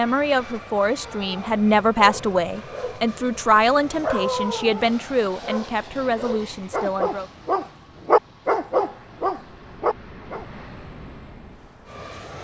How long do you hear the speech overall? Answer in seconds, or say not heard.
7 s.